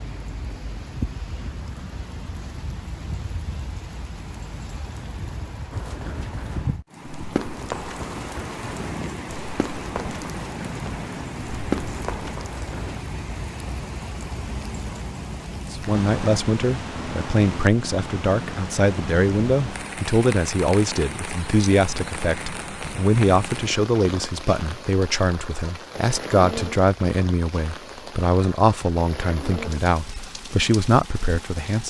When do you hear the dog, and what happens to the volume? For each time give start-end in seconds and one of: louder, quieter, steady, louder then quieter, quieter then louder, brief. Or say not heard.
not heard.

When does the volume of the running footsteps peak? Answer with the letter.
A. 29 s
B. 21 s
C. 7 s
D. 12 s
D.